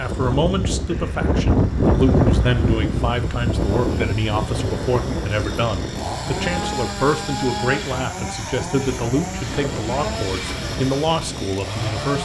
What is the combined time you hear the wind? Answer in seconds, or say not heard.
12 s.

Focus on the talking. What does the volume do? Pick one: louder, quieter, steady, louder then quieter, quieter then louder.
steady.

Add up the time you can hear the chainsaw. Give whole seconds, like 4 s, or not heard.
12 s.